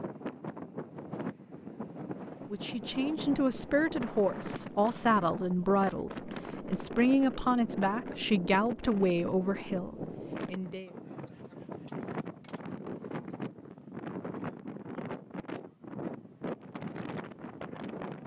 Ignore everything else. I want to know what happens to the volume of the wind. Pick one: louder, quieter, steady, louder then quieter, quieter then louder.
steady.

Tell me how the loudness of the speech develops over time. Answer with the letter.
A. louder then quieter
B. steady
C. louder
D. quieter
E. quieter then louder
B.